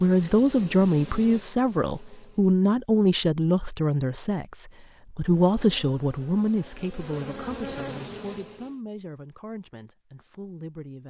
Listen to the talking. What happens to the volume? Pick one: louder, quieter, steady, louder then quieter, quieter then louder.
quieter.